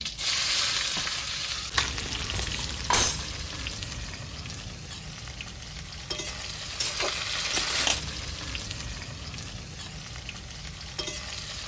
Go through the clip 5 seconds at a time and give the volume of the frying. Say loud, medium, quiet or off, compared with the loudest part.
loud, loud, medium.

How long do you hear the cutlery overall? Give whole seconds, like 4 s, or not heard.
3 s.